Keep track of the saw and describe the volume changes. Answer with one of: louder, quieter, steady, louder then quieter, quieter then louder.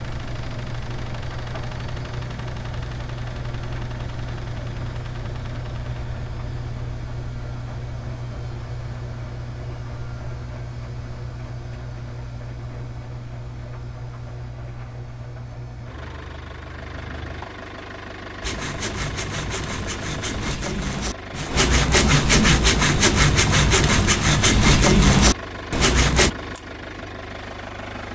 louder.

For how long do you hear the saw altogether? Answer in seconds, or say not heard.
8 s.